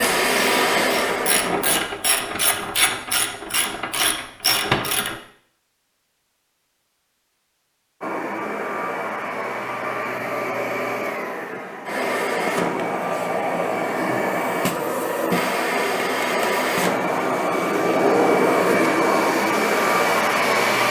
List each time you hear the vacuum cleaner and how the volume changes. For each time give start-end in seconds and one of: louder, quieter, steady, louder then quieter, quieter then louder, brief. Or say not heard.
0.0-1.9 brief
8.0-20.8 louder.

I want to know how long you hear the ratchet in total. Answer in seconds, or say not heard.
5 s.